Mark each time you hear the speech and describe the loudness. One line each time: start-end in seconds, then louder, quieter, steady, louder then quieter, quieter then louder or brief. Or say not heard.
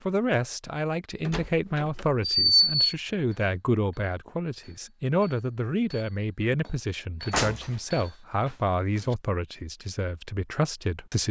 0.1-11.2 steady.